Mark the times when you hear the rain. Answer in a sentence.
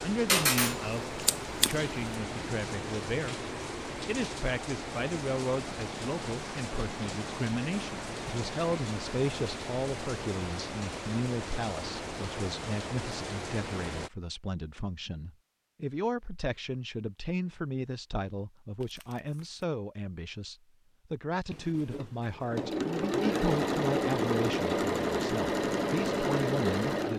The rain can be heard from 0.0 to 14.1 s.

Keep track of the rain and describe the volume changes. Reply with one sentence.
The volume of the rain stays about the same.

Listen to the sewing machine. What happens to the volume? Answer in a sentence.
The loudness of the sewing machine goes up.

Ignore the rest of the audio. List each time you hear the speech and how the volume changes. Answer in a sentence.
You can hear the speech from 0.0 to 27.1 s, at a steady volume.